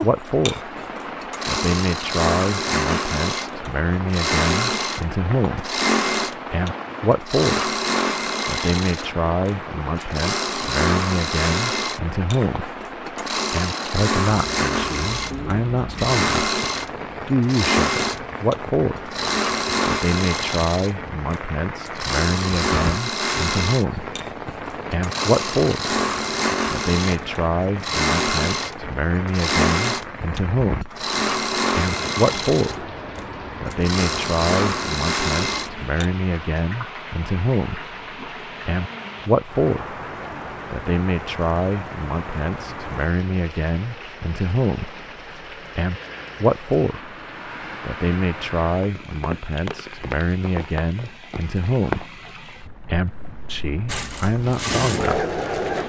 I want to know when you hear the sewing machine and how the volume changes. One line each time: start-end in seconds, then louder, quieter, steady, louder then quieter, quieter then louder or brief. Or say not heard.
0.0-36.0 steady
53.9-55.8 brief.